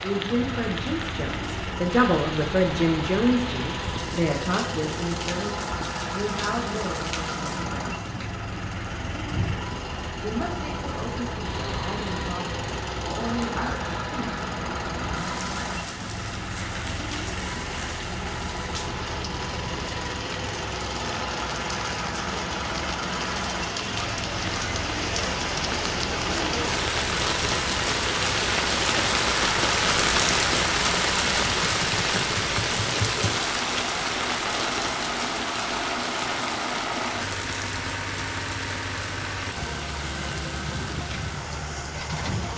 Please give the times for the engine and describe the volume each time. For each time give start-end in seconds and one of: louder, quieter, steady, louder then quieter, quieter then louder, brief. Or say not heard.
0.0-42.5 steady.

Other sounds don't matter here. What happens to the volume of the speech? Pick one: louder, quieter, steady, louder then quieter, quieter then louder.
quieter.